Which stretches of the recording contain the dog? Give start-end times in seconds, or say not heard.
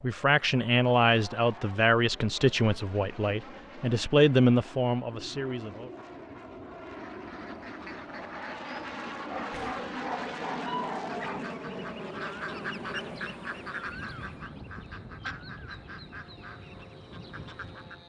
9.3-11.4.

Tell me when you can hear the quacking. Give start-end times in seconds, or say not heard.
6.8-18.0.